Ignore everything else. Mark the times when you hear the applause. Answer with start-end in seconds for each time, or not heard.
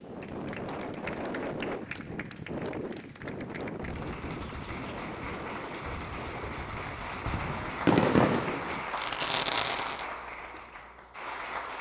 0.0-11.7.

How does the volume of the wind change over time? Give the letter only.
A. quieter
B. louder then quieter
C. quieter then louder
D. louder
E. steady
A.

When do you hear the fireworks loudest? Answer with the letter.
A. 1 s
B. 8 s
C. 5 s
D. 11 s
B.